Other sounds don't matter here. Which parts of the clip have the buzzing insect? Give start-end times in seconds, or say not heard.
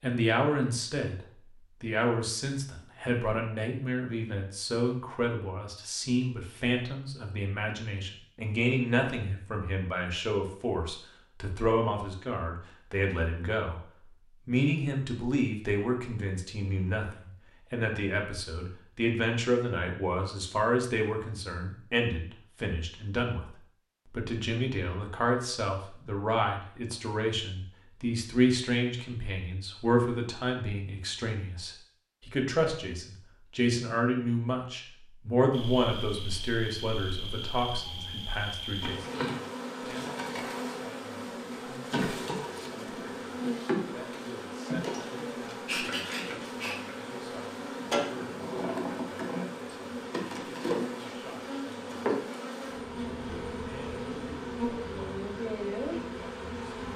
35.5-56.9.